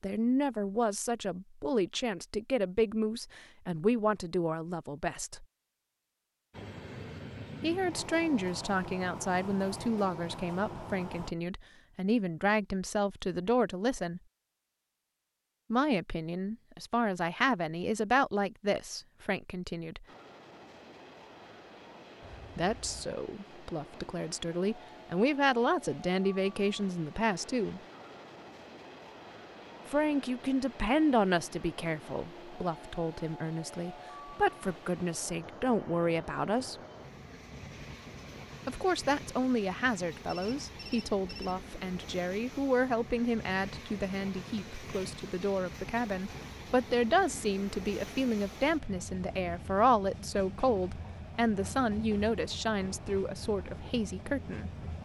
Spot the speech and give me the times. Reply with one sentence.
You can hear the speech from 0.0 to 5.5 s, from 7.6 to 14.2 s, from 15.7 to 20.1 s, from 22.6 to 27.8 s, from 29.9 to 36.8 s and from 38.6 to 54.7 s.